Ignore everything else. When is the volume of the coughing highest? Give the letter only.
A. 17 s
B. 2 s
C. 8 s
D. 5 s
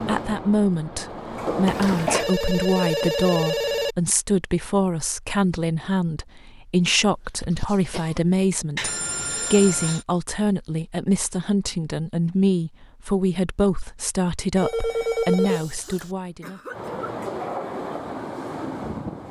B.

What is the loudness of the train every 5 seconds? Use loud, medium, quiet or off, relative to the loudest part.
loud, off, off, loud.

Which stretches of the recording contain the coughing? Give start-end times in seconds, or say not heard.
1.6-2.3, 7.3-8.2, 15.8-17.1.